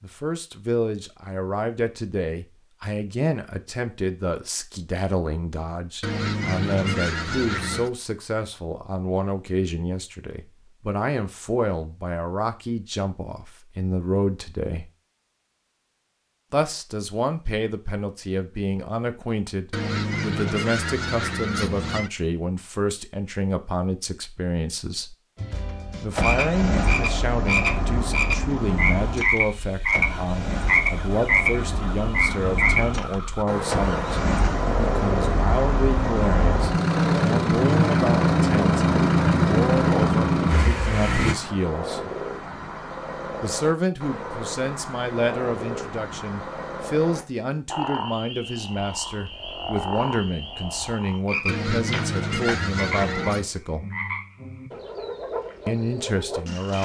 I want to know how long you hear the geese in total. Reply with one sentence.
You can hear the geese for 6 seconds altogether.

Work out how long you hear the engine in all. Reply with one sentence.
You can hear the engine for 16 seconds altogether.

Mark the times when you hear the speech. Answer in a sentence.
The speech can be heard from 0.0 to 14.9 s, from 16.5 to 25.1 s, from 26.0 to 42.0 s, from 43.4 to 53.9 s and from 55.6 to 56.8 s.